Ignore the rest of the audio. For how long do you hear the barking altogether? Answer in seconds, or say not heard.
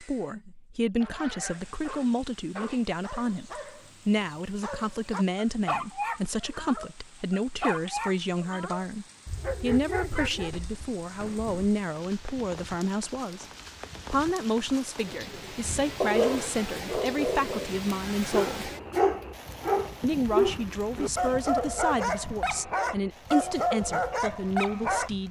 19 s.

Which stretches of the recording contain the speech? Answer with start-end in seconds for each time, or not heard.
0.0-13.4, 14.1-18.7, 20.0-25.2.